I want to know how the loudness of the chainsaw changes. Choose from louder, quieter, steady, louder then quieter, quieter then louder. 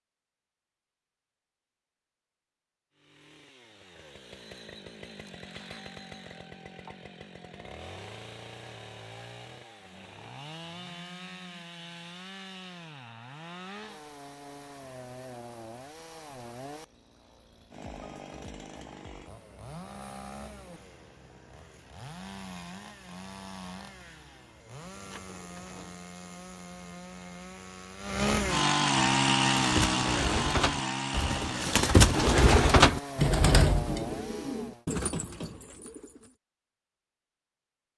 louder.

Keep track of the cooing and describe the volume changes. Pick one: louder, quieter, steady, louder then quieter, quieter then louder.
louder then quieter.